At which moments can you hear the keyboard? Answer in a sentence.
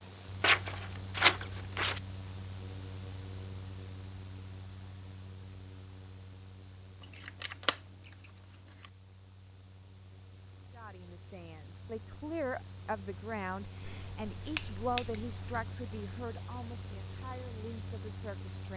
You can't hear the keyboard here.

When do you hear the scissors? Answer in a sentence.
The scissors can be heard from 0.4 to 2.0 s, from 7.1 to 7.8 s and from 13.8 to 15.7 s.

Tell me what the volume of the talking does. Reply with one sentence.
The volume of the talking goes down.